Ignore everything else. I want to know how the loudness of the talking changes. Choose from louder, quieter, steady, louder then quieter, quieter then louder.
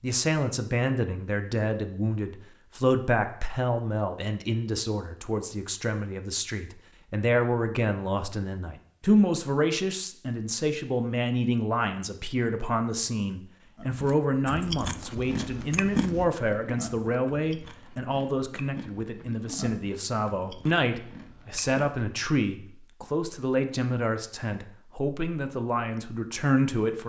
steady.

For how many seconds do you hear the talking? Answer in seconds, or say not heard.
27 s.